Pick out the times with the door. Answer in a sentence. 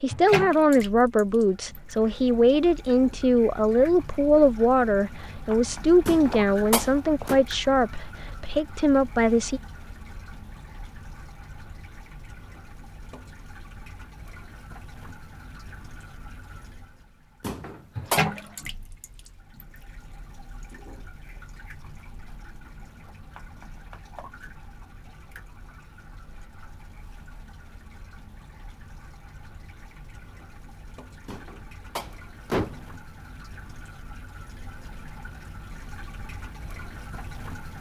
You can hear the door from 6.0 to 7.4 s, from 17.4 to 18.2 s and from 31.2 to 33.0 s.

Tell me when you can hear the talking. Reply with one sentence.
The talking can be heard from 0.0 to 9.6 s.